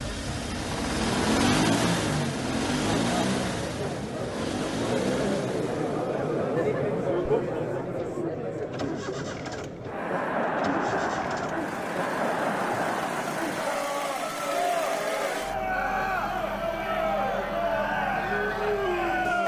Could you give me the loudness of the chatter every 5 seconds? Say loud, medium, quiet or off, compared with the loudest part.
medium, loud, loud, loud.